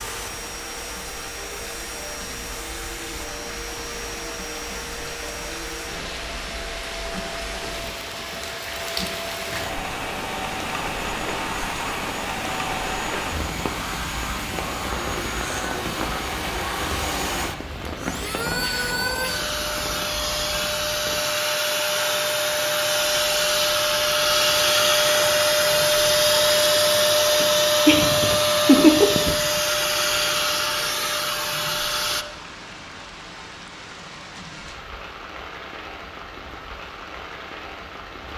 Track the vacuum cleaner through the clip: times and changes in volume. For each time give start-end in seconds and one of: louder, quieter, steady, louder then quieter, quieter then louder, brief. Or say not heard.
0.0-32.2 louder.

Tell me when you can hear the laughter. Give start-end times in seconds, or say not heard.
27.4-29.6.